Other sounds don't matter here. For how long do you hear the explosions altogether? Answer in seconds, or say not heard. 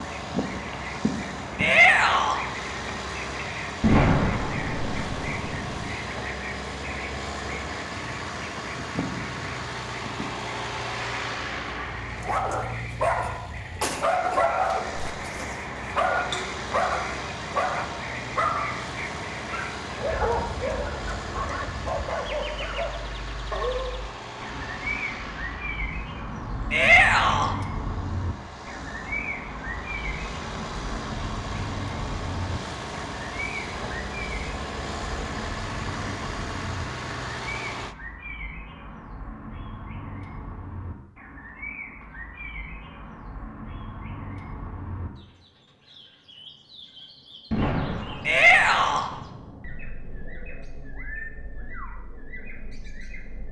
4 s.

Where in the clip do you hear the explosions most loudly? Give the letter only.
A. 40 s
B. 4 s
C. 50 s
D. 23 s
B.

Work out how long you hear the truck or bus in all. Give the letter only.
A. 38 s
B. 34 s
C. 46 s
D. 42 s
A.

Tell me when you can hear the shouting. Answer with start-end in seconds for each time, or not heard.
1.6-2.5, 26.7-27.6, 48.2-49.1.